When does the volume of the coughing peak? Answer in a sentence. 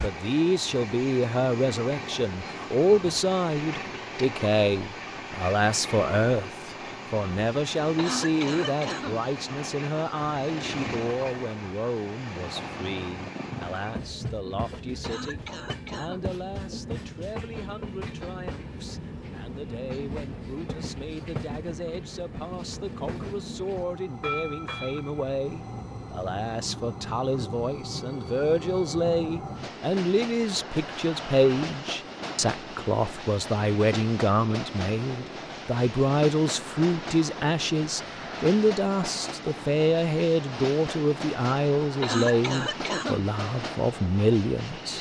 The volume of the coughing peaks at 42 seconds.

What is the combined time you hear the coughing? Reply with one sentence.
The coughing can be heard for 4 seconds in total.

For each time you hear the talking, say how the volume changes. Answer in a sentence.
You can hear the talking from 0.0 to 44.9 s, getting quieter then louder.